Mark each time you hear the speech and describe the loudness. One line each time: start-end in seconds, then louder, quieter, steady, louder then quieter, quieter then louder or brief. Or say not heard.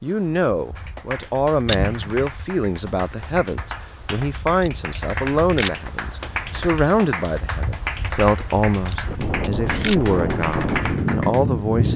0.0-11.9 steady.